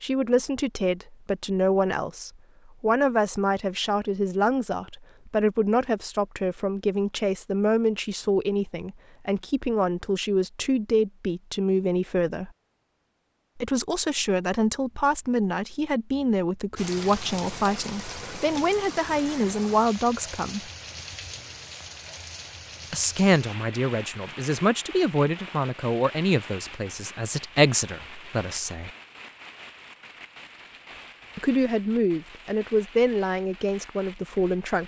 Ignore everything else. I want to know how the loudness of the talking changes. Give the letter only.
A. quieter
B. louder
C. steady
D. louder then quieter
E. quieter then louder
C.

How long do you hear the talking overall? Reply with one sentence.
You can hear the talking for 29 seconds altogether.